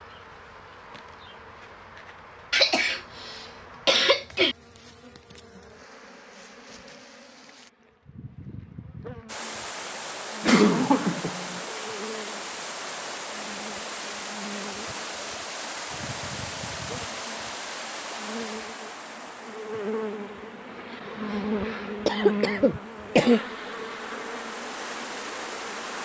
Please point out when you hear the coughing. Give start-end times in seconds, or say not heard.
2.5-4.5, 10.4-11.6, 22.1-23.4.